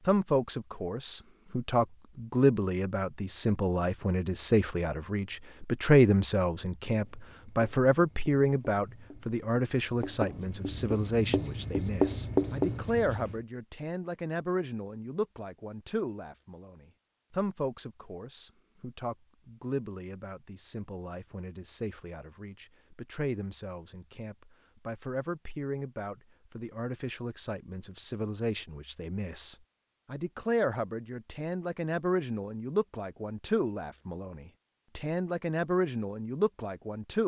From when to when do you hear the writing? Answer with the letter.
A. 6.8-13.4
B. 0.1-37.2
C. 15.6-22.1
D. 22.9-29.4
A.